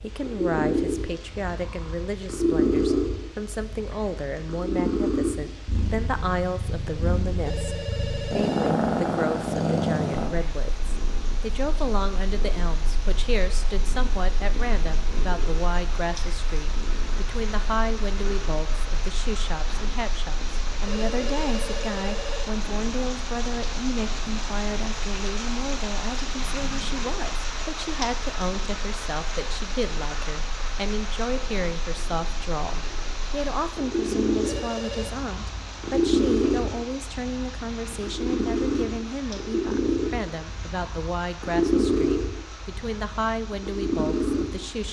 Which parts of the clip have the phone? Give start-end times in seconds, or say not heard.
7.5-8.8, 20.9-22.6, 34.4-35.1.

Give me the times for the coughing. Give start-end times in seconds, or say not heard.
not heard.